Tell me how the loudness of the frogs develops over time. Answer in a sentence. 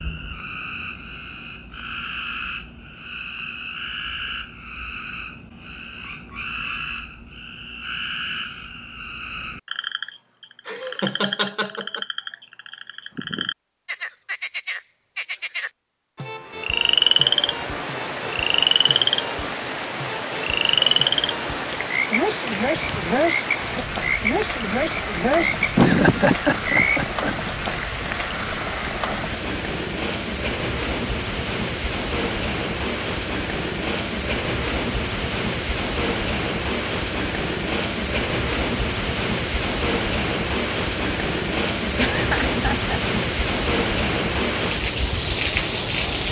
The loudness of the frogs goes up.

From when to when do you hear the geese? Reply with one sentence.
The geese can't be heard in this clip.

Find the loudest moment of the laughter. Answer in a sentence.
The loudest moment of the laughter is at 26 seconds.